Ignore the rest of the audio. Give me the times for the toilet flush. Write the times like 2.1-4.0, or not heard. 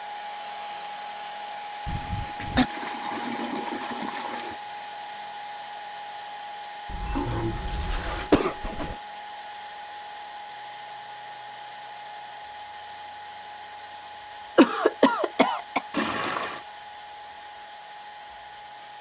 2.2-4.6, 6.8-8.3, 15.9-16.6.